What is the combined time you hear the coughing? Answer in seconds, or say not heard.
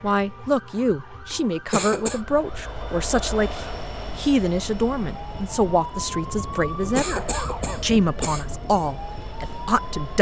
3 s.